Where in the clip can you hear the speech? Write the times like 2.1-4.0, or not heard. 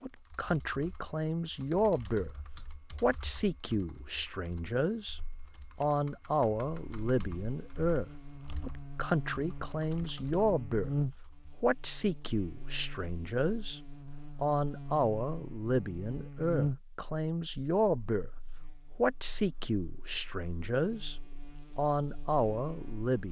0.0-2.3, 3.0-5.2, 5.8-10.9, 11.6-18.3, 18.9-23.2.